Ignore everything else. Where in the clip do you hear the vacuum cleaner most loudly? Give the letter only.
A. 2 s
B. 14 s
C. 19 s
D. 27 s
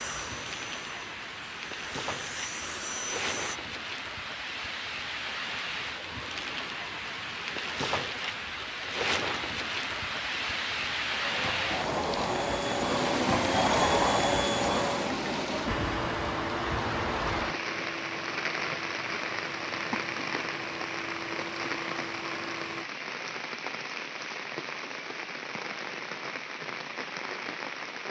B.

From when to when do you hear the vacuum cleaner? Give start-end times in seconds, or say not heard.
0.0-3.6, 11.2-22.9.